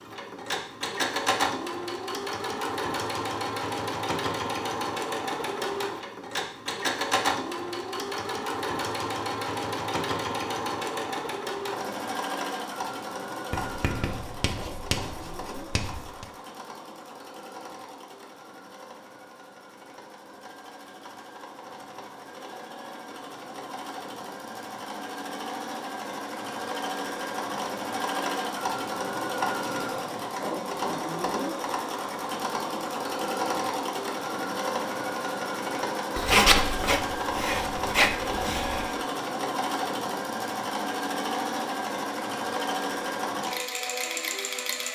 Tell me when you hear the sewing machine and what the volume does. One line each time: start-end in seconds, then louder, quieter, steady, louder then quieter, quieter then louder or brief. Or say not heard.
0.0-44.9 quieter then louder.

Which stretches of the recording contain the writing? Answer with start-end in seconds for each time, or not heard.
13.5-16.2, 36.1-39.0.